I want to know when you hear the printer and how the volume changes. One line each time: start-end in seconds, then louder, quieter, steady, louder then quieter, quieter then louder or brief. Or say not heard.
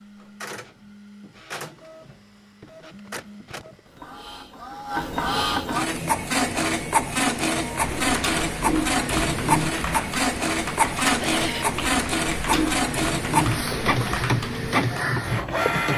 0.0-15.9 louder.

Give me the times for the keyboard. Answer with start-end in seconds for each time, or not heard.
7.7-15.1.